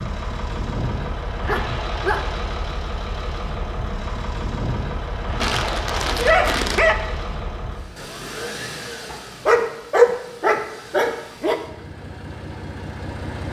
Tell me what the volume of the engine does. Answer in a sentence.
The volume of the engine goes down.